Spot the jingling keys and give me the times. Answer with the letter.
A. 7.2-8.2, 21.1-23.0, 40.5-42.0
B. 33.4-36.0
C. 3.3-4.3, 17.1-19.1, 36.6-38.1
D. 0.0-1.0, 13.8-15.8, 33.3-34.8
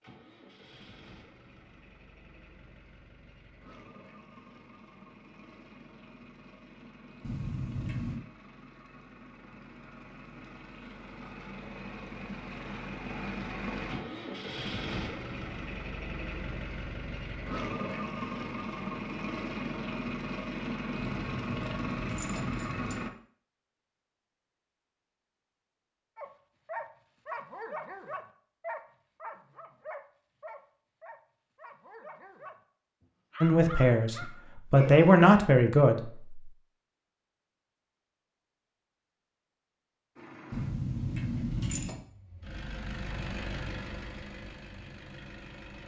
A.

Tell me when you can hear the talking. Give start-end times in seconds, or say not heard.
33.4-36.0.